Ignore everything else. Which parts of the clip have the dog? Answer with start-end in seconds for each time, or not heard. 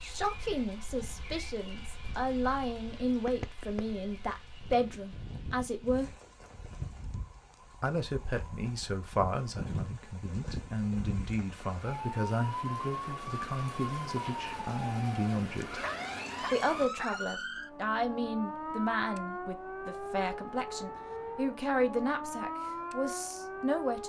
15.8-17.2.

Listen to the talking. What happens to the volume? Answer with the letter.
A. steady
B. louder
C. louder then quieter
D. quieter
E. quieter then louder
A.